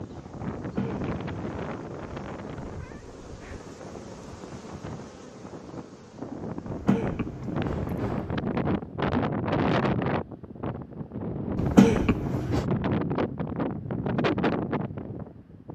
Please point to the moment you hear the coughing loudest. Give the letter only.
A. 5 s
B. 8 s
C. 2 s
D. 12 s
D.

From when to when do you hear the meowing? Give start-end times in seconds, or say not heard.
2.6-3.7.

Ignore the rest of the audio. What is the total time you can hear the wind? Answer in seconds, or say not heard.
16 s.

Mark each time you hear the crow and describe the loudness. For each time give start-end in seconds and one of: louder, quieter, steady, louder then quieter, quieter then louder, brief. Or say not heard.
not heard.